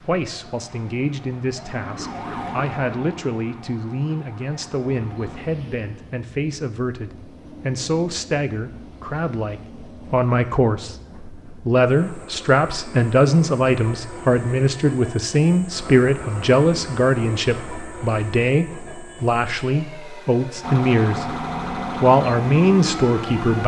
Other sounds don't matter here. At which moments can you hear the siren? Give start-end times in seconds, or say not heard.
0.0-5.5, 20.6-23.6.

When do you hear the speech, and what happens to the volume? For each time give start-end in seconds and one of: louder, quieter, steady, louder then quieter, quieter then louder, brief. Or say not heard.
0.0-23.6 louder.